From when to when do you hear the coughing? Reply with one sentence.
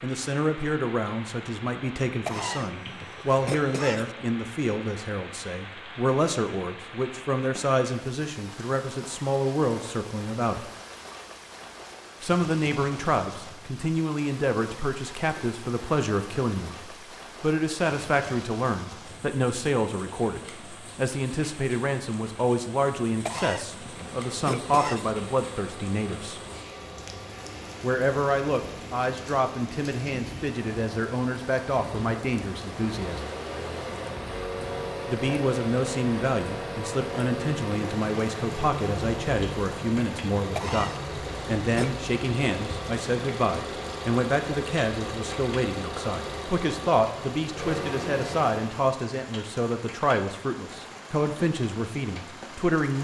You can hear the coughing from 2.2 to 4.2 s, from 23.2 to 25.1 s and from 40.5 to 42.0 s.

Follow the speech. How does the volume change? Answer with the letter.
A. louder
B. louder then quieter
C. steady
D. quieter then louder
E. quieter
C.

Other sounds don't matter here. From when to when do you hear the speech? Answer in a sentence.
You can hear the speech from 0.0 to 10.7 s, from 12.2 to 26.4 s, from 27.8 to 33.2 s and from 35.0 to 52.9 s.